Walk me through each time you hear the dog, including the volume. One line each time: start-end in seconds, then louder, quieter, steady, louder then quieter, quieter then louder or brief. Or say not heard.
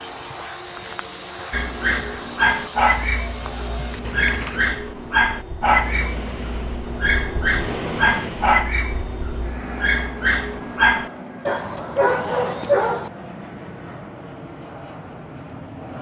1.5-13.1 steady.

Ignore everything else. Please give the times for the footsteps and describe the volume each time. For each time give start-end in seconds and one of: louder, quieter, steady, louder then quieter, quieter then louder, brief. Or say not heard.
0.0-4.7 steady.